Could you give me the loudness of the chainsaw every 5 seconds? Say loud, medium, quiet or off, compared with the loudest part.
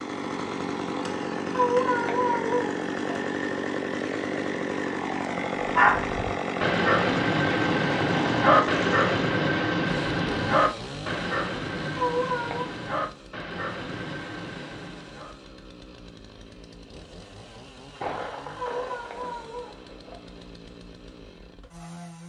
loud, loud, medium, quiet, quiet.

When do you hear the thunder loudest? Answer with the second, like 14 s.
18 s.